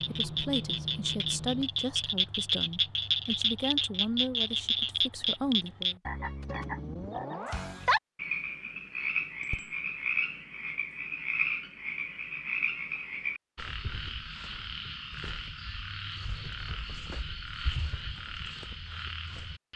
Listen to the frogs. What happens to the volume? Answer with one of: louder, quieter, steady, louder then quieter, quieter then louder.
quieter.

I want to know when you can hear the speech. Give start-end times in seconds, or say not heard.
0.0-6.0.